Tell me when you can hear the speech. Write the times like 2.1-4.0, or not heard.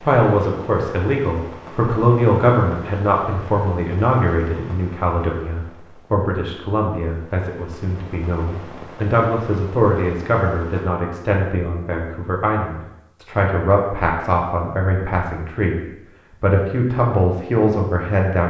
0.0-18.4.